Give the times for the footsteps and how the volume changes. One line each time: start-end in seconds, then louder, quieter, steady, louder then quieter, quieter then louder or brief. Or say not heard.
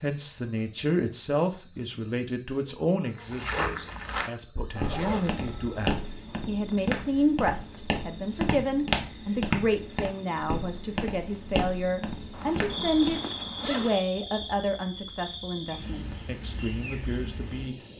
3.1-13.2 steady.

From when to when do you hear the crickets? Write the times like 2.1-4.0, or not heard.
0.0-17.9.